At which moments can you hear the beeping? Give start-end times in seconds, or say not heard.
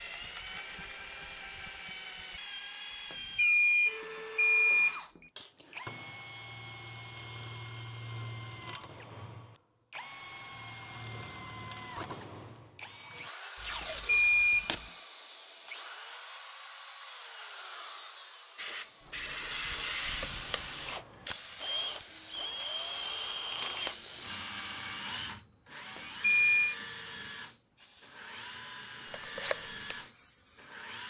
3.1-5.0, 13.8-14.8, 25.9-26.8.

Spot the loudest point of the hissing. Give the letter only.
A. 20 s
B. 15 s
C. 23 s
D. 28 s
A.